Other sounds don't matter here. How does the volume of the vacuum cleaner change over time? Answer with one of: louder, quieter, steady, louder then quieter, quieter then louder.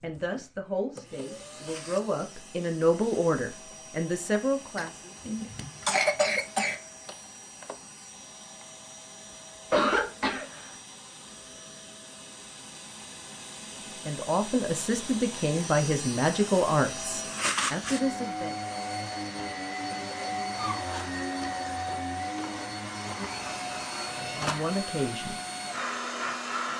louder.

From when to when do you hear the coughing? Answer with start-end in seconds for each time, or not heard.
4.8-6.8, 9.7-10.7, 19.9-20.8.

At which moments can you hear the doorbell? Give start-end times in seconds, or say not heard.
not heard.